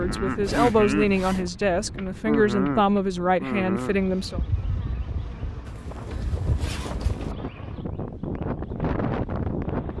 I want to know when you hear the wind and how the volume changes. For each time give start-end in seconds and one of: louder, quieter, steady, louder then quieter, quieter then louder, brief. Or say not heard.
0.0-9.9 quieter then louder.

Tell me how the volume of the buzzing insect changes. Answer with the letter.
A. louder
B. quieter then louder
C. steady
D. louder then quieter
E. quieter
E.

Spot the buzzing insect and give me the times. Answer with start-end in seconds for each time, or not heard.
0.0-9.9.